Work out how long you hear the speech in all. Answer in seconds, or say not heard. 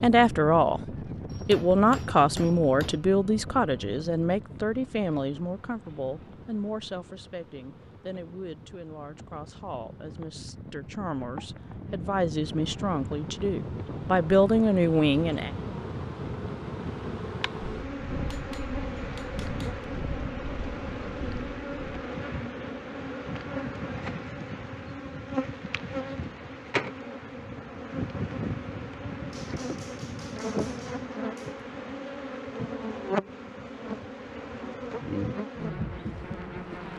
15 s.